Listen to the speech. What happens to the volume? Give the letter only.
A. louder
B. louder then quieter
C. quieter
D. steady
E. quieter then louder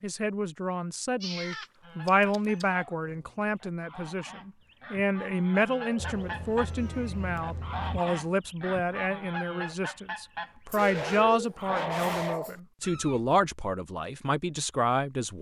D.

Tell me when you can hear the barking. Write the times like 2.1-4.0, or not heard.
2.6-3.5, 5.8-6.3, 10.7-12.6.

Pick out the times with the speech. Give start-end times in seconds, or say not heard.
0.0-15.3.